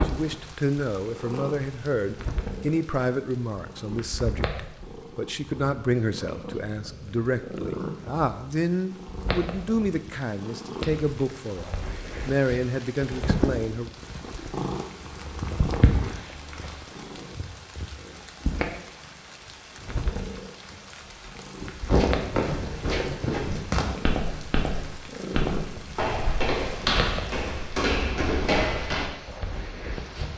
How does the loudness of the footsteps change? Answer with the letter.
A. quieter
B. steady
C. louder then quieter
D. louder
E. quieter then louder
B.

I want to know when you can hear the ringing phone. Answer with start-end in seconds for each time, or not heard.
not heard.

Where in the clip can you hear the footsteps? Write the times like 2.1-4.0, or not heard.
21.9-29.1.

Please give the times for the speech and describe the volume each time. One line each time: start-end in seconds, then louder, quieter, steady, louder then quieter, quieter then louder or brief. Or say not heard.
0.0-13.9 steady.